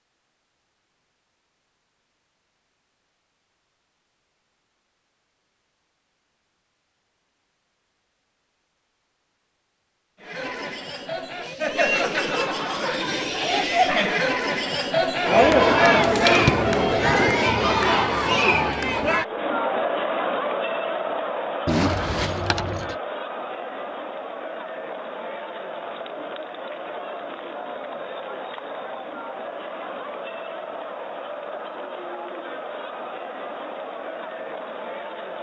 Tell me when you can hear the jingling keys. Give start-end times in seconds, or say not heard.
21.6-22.9.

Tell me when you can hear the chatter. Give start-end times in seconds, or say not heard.
10.2-35.3.